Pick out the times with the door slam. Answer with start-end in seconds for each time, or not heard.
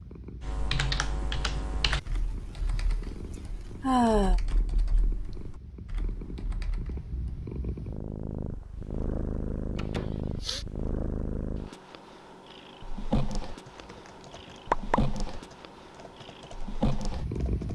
9.8-10.2.